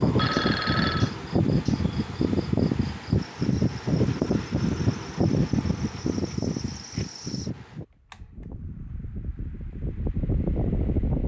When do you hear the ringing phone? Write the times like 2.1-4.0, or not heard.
0.0-1.1.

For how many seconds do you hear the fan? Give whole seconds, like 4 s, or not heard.
11 s.